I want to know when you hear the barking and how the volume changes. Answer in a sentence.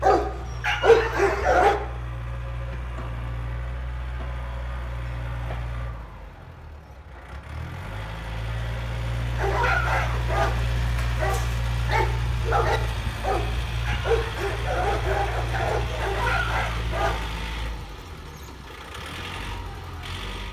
You can hear the barking briefly from 0.0 to 1.8 s; and from 9.3 to 17.4 s, at a steady volume.